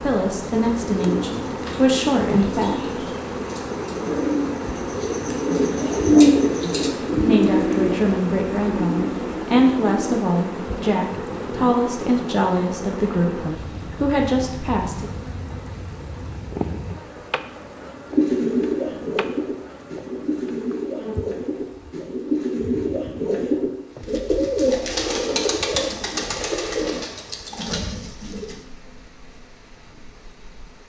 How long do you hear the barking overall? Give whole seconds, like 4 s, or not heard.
not heard.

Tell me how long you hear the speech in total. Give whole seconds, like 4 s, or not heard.
11 s.